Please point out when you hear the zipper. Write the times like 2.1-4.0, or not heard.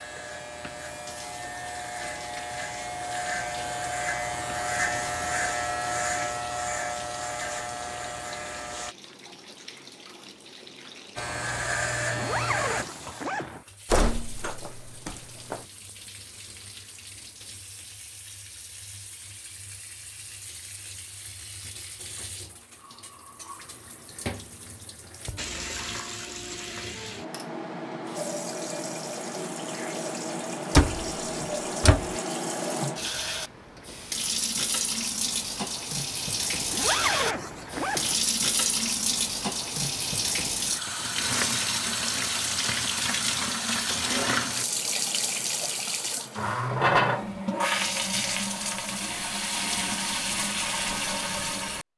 12.2-13.7, 36.7-38.2.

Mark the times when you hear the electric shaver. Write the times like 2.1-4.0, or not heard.
0.0-8.9, 11.2-12.8.